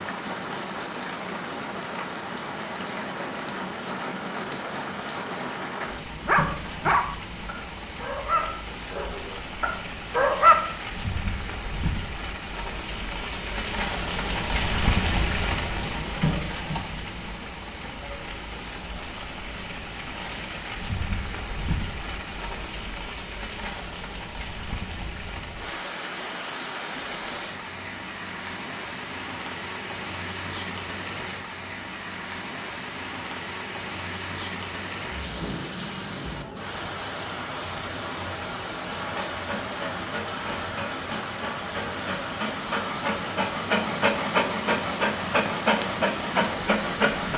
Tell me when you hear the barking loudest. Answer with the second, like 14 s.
10 s.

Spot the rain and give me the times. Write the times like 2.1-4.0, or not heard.
0.0-47.3.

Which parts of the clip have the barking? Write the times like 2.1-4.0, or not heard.
6.2-10.6, 38.9-47.3.